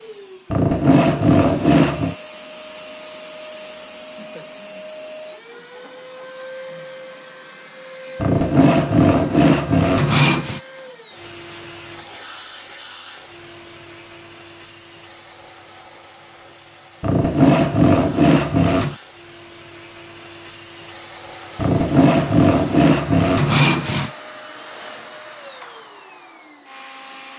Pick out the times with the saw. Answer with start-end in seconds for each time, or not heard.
0.5-2.1, 8.2-10.6, 17.0-18.9, 21.6-24.1.